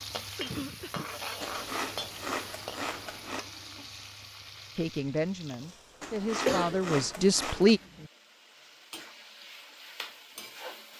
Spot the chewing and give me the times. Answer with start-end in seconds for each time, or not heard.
1.4-3.4, 6.0-7.8.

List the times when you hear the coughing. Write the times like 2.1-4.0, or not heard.
0.3-1.1, 6.5-8.1.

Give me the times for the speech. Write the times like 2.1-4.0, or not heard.
4.8-7.8.